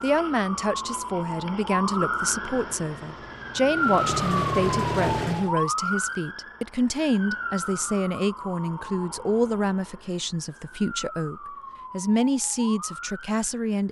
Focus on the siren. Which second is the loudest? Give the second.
4 s.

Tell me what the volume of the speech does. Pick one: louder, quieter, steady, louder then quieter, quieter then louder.
steady.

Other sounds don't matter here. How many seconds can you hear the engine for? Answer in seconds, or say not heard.
3 s.